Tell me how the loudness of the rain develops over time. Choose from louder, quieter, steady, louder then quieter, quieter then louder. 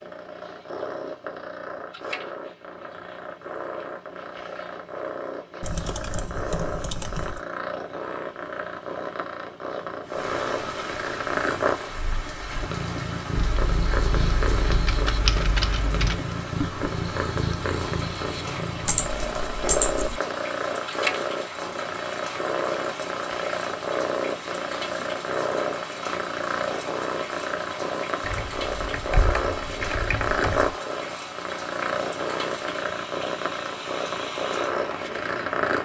steady.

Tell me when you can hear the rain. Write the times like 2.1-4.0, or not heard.
10.0-35.8.